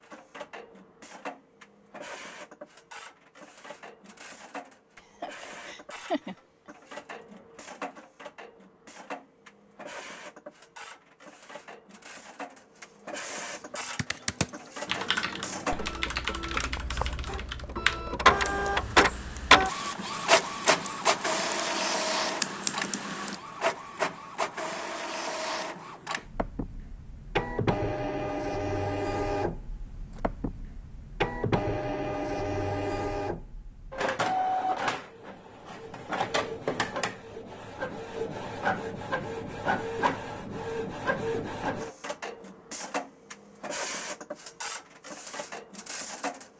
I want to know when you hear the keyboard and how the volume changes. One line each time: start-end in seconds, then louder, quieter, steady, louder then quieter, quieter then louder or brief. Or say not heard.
13.9-23.4 quieter then louder.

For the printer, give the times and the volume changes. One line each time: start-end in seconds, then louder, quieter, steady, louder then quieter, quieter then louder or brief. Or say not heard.
0.0-46.5 louder then quieter.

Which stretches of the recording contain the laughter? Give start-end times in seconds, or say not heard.
5.2-6.3.